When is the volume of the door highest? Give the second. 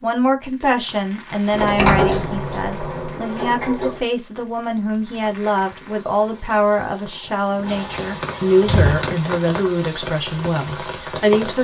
2 s.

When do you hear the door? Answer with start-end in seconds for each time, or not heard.
1.5-4.0, 7.7-9.1.